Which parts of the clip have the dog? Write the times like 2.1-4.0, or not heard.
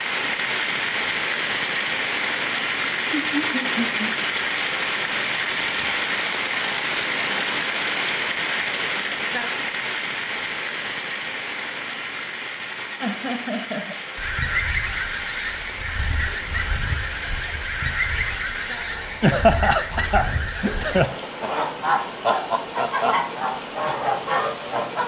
not heard.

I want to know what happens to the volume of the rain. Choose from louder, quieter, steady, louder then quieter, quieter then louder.
quieter.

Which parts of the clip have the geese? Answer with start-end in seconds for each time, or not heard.
14.2-25.0.